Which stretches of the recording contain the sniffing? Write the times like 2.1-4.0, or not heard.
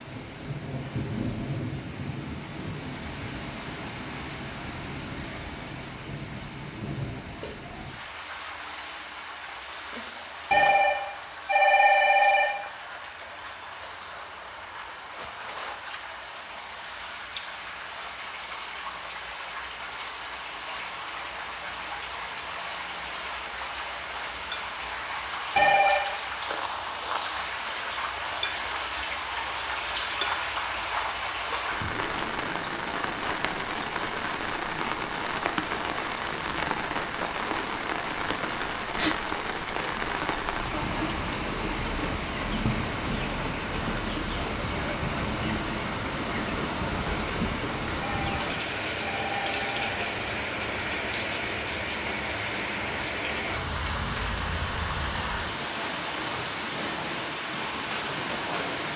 38.5-39.1.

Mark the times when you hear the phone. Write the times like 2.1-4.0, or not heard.
10.5-12.5, 25.6-26.1, 48.0-50.0.